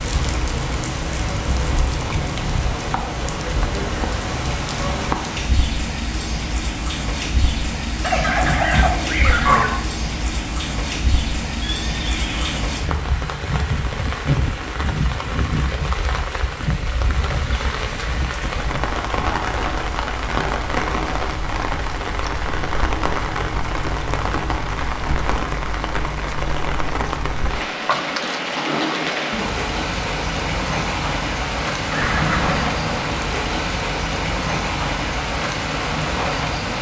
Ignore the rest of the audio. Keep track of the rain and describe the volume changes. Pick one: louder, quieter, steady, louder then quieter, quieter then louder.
steady.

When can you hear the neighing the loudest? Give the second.
32 s.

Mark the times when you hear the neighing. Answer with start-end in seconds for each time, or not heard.
11.6-12.7, 31.9-33.0.